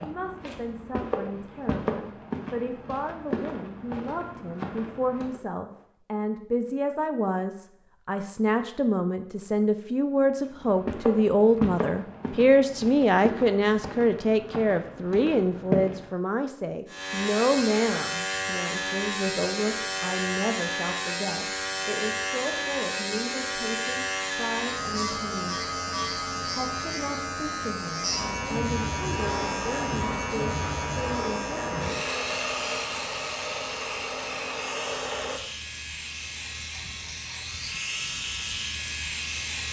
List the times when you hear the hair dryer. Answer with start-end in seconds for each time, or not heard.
29.4-35.4.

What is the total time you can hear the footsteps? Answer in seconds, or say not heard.
11 s.